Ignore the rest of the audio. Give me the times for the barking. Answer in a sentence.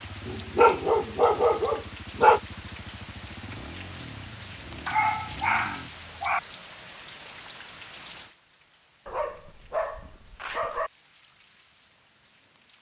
The barking can be heard from 0.2 to 2.4 s, from 4.8 to 6.4 s and from 9.1 to 10.9 s.